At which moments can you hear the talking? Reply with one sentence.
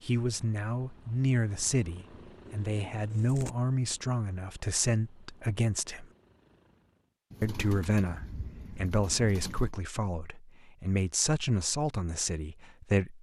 You can hear the talking from 0.0 to 6.0 s and from 7.4 to 13.1 s.